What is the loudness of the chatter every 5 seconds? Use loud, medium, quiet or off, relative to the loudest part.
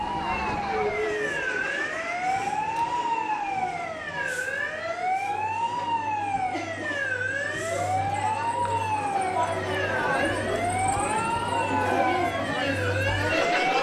medium, medium, loud.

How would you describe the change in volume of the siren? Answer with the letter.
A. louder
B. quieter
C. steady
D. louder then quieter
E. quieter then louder
C.